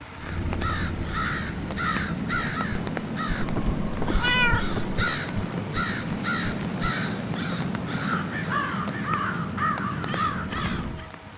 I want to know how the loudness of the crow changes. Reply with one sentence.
The volume of the crow stays about the same.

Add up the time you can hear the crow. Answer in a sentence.
The crow can be heard for 11 seconds in total.